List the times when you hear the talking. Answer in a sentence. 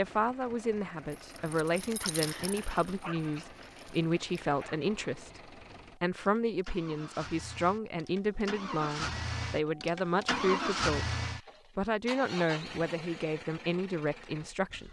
The talking can be heard from 0.0 to 5.4 s, from 6.0 to 11.2 s and from 11.8 to 14.8 s.